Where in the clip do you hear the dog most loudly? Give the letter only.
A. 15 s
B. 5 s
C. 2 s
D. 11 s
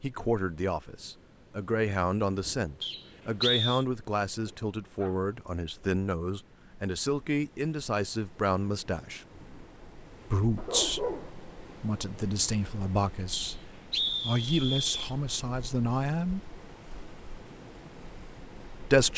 D.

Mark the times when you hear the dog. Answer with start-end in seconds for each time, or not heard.
4.5-5.2, 10.6-11.3.